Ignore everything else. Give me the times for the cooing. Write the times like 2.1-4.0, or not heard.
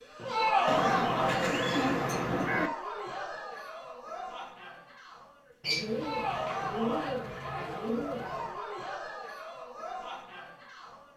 0.7-2.7, 5.6-8.5.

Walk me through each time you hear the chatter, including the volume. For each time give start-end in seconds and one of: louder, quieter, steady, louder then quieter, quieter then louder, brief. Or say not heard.
0.1-11.1 quieter.